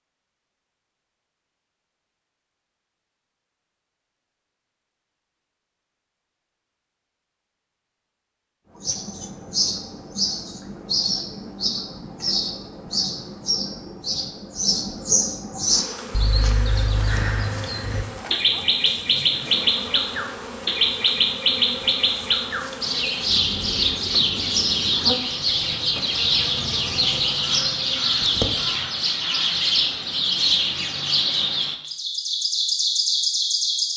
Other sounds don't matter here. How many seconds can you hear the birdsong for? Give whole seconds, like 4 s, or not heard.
25 s.